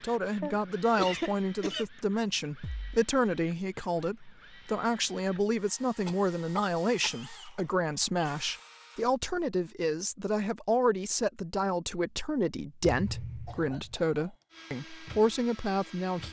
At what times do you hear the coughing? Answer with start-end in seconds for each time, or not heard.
0.4-1.9, 6.0-7.8, 13.4-14.4.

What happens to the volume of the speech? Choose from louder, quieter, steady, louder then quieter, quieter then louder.
steady.